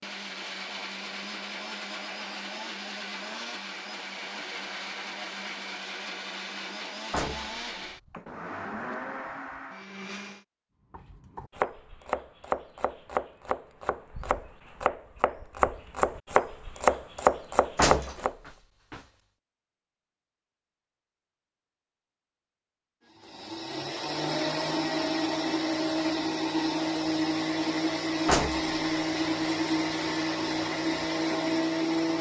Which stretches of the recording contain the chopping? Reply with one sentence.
You can hear the chopping from 10.9 to 18.4 s.